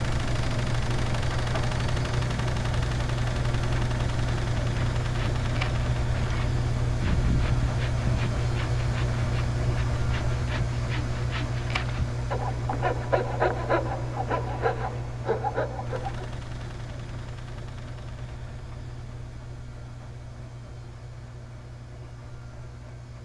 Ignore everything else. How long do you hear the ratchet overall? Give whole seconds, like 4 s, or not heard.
not heard.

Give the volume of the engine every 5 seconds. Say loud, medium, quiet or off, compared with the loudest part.
loud, loud, loud, medium, quiet.